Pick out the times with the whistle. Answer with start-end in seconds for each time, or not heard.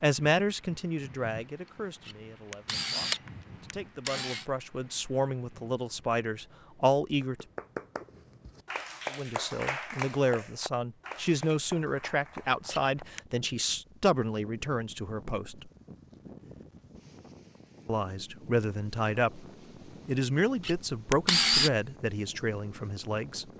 not heard.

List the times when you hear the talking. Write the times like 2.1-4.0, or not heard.
0.0-7.5, 9.1-15.7, 17.9-19.4, 20.1-23.4.